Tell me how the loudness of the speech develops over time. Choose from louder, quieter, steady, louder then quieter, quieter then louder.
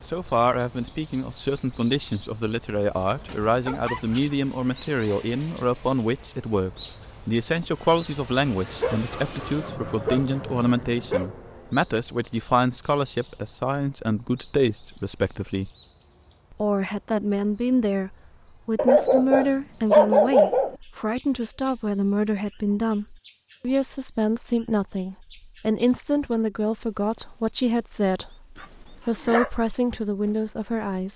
steady.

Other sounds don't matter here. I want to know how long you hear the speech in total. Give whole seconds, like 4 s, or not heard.
30 s.